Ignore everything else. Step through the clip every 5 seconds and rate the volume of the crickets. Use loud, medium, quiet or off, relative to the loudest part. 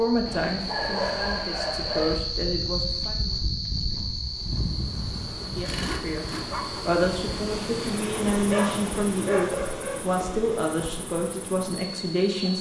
loud, medium, medium.